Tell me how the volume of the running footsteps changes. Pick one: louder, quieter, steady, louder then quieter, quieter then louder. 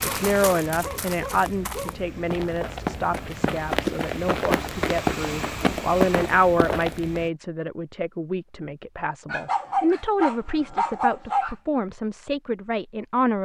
louder.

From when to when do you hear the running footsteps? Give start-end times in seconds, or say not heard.
0.0-7.2.